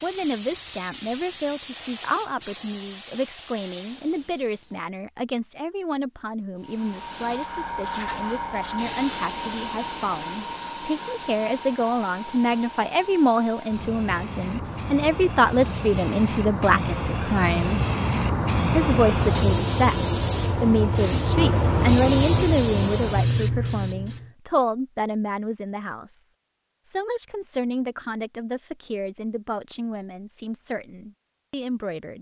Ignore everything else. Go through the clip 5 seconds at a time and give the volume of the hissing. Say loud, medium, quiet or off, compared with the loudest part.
medium, medium, medium, loud, loud, off, off.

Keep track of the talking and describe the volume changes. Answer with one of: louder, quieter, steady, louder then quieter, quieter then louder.
louder then quieter.